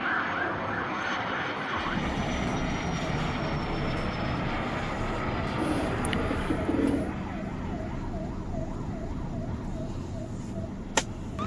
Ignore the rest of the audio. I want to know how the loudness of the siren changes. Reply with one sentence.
The volume of the siren stays about the same.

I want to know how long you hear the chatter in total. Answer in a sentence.
You can't hear the chatter here.